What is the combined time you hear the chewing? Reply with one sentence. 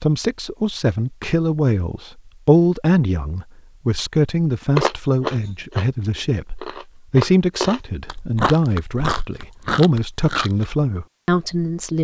You can hear the chewing for 6 seconds altogether.